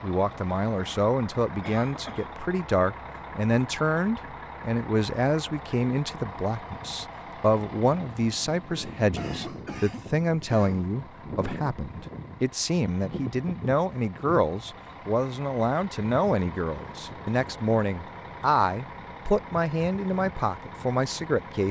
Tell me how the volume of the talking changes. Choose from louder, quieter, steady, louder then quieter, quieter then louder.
steady.